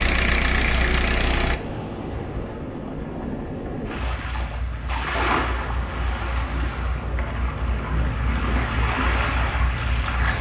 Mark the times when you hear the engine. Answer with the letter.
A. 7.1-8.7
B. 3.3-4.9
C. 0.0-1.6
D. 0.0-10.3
C.